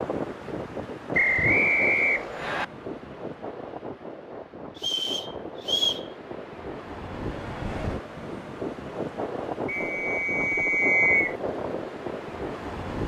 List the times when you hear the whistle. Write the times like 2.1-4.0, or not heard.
1.1-2.6, 4.8-6.0, 9.7-11.3.